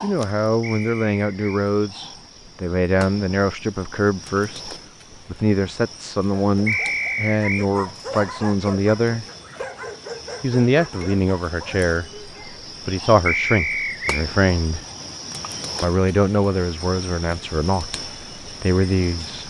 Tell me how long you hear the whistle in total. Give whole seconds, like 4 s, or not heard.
3 s.